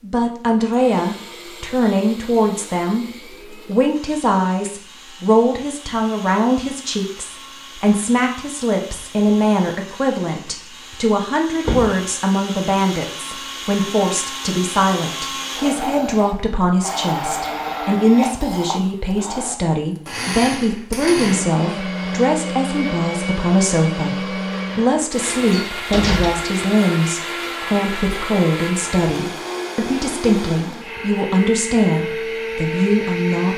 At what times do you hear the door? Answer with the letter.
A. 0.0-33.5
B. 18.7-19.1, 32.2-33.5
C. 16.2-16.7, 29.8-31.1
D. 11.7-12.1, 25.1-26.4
D.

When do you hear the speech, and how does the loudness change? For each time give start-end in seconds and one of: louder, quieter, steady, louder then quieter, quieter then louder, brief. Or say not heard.
0.0-33.5 steady.